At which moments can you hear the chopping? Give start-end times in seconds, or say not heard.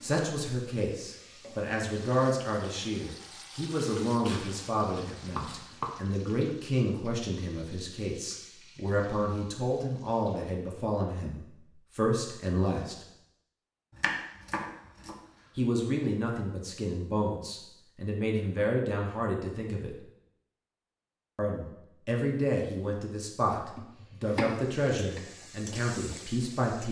4.2-6.0, 13.9-15.6, 23.6-25.2.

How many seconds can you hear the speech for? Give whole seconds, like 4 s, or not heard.
23 s.